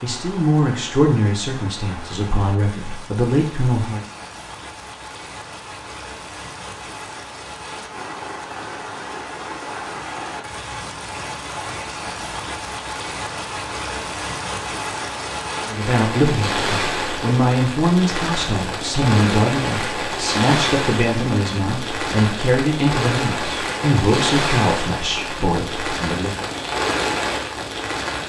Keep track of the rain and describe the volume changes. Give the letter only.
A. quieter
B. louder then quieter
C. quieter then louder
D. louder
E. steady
D.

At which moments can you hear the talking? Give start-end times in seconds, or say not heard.
0.0-4.0, 15.7-26.4.